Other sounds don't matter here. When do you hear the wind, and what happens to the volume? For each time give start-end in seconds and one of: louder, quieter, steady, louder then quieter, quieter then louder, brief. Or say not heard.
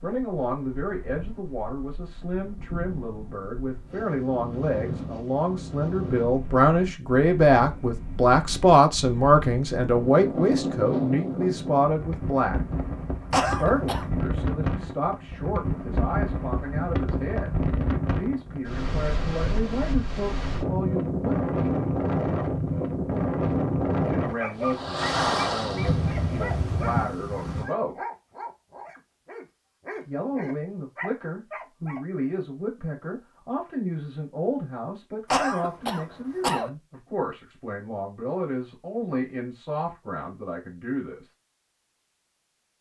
0.0-27.7 louder.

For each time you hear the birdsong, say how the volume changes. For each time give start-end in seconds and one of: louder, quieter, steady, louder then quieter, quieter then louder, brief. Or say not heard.
not heard.